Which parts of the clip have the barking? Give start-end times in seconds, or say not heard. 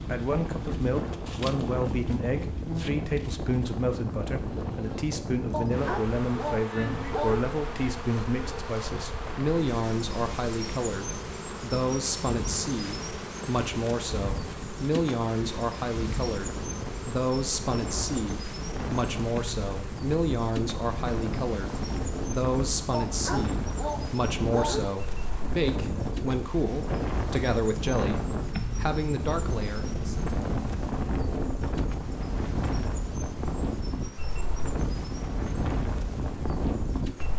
5.5-7.5, 22.9-24.9.